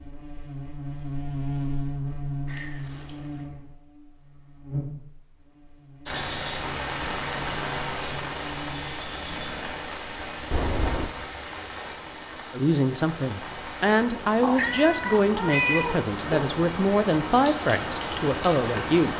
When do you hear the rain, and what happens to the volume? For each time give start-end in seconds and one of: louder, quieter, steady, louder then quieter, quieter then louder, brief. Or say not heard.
6.0-19.1 quieter then louder.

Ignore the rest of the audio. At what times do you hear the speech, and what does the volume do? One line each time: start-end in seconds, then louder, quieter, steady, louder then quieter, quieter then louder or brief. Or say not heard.
12.5-19.1 steady.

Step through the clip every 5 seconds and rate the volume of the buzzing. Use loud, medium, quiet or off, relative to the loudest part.
loud, medium, off, off.